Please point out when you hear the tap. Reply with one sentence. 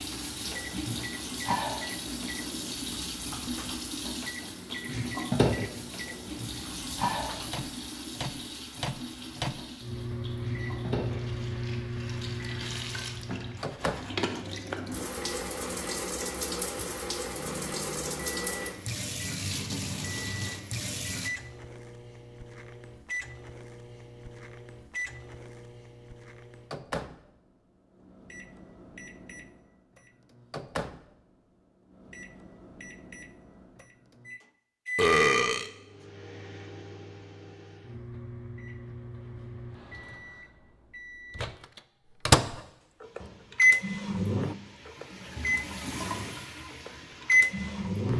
The tap can be heard from 0.0 to 21.3 s and from 43.0 to 48.1 s.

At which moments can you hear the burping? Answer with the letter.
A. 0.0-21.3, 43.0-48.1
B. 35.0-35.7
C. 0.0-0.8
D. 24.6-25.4
B.